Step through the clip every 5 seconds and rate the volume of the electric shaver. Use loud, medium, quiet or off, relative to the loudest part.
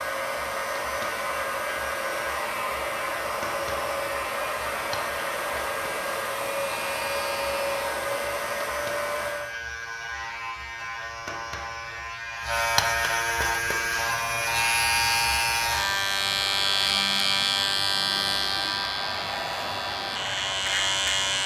medium, medium, loud, loud, loud.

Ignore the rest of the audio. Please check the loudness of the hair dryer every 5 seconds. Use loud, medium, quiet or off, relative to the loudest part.
loud, loud, off, medium, medium.